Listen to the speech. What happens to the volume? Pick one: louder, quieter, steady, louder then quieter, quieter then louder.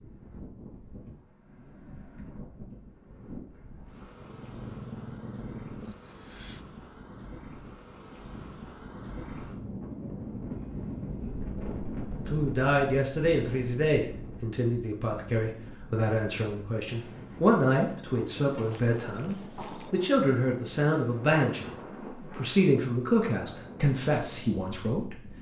steady.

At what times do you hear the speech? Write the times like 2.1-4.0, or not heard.
12.2-25.3.